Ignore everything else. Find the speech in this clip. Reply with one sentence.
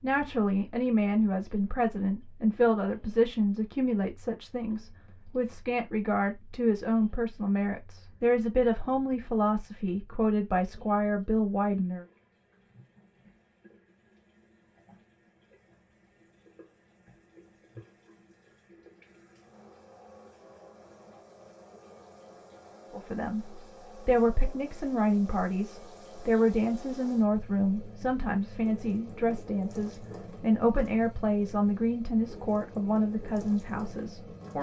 You can hear the speech from 0.0 to 12.1 s and from 22.9 to 34.5 s.